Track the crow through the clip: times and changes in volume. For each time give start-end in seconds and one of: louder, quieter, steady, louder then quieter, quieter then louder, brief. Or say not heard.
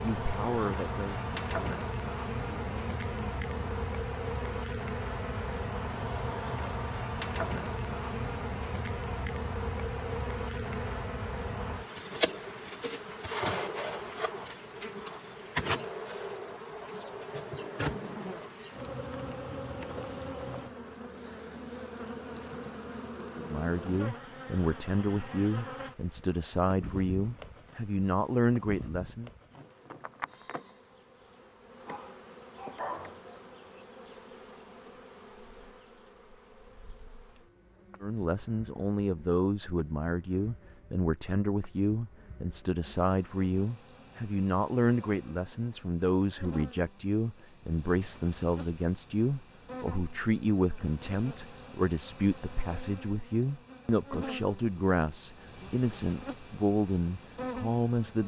not heard.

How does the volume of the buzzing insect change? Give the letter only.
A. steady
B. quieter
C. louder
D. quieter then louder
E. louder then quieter
D.